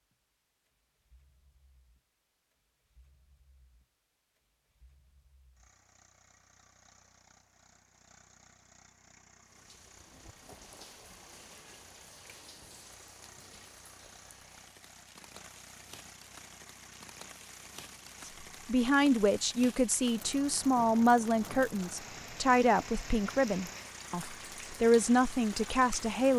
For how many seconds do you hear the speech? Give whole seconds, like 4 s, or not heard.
8 s.